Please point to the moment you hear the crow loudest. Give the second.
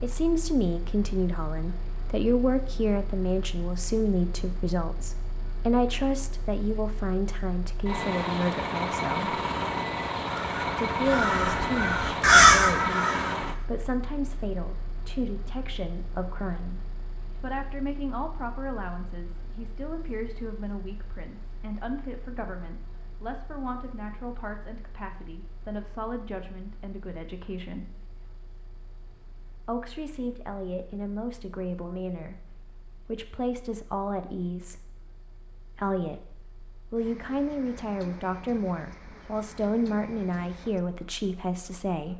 12 s.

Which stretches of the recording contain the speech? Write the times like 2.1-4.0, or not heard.
0.0-9.4, 10.8-27.9, 29.6-34.9, 35.8-42.1.